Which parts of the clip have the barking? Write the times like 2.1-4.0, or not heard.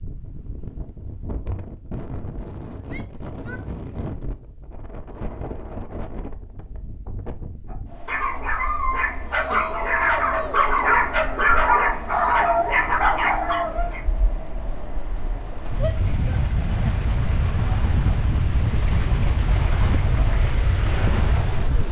7.7-14.0.